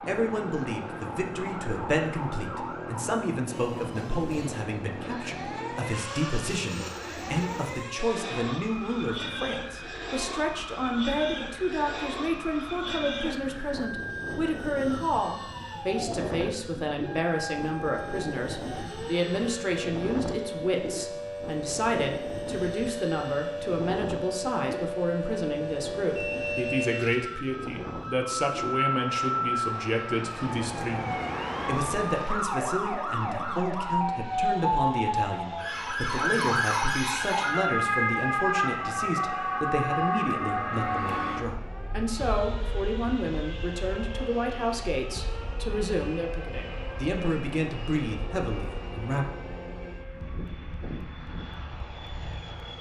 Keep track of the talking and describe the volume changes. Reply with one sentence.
The loudness of the talking stays about the same.